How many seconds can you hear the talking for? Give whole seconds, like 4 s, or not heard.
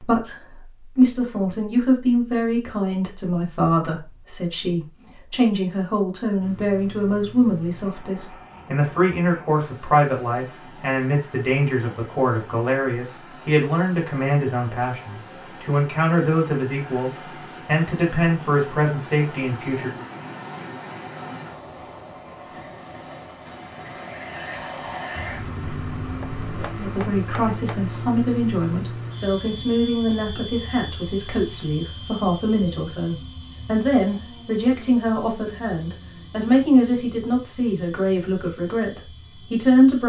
33 s.